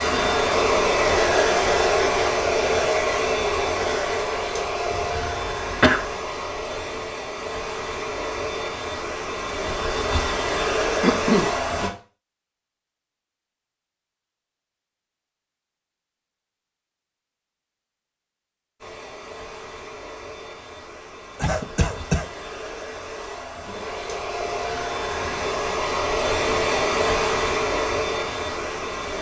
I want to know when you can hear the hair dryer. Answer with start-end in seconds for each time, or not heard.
0.0-11.9, 18.8-29.1.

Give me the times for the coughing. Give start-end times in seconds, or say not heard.
4.9-6.0, 10.6-11.5, 21.4-22.3.